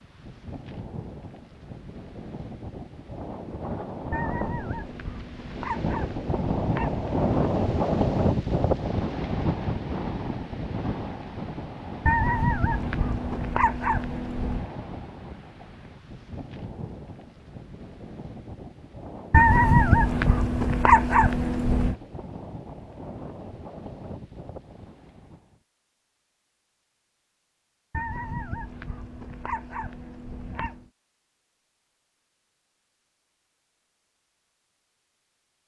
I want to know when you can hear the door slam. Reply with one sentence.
You can't hear the door slam here.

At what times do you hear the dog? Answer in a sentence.
The dog can be heard from 4.1 to 7.0 s, from 12.1 to 14.7 s, from 19.3 to 21.9 s and from 27.9 to 30.9 s.